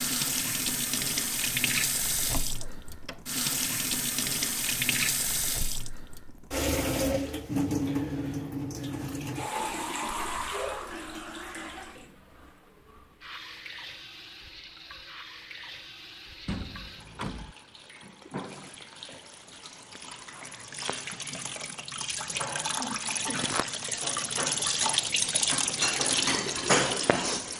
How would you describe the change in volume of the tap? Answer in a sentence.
The loudness of the tap goes down, then up.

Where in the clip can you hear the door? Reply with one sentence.
You can hear the door from 2.2 to 3.2 s and from 16.4 to 17.6 s.